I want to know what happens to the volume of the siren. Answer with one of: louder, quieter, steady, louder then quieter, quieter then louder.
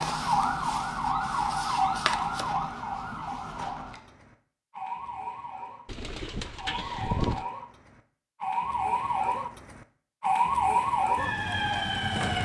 quieter then louder.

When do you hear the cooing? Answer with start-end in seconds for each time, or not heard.
5.8-7.5.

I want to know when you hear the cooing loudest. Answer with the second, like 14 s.
7 s.